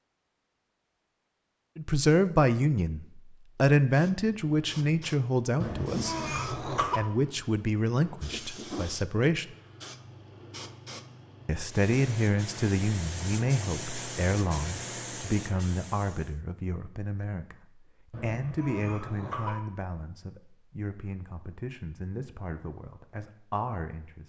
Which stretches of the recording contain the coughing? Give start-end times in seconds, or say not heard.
5.6-7.0, 18.1-19.6.